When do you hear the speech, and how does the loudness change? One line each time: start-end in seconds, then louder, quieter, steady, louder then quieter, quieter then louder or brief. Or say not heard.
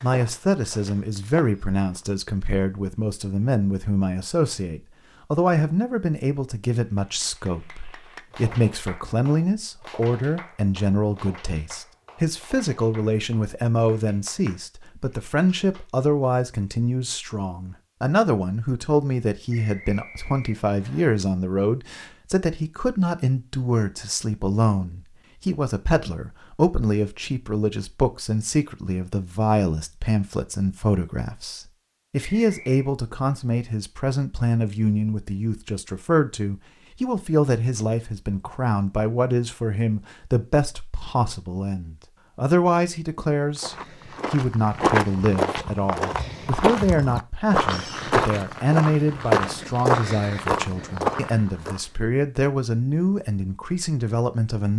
0.0-54.7 steady.